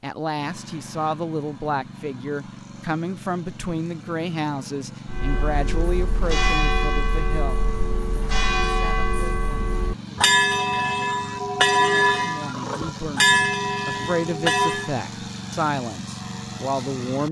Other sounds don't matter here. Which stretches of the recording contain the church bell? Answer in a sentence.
The church bell can be heard from 5.0 to 14.9 s.